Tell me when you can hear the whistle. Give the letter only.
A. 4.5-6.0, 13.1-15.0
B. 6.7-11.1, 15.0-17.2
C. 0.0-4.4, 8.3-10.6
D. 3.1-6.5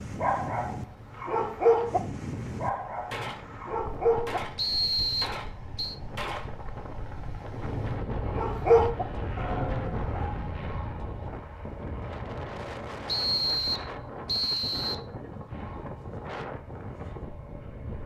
A.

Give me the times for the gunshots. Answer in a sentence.
You can hear the gunshots from 3.1 to 6.5 s.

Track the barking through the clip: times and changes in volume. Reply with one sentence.
You can hear the barking from 0.0 to 4.4 s, getting louder then quieter; and briefly from 8.3 to 10.6 s.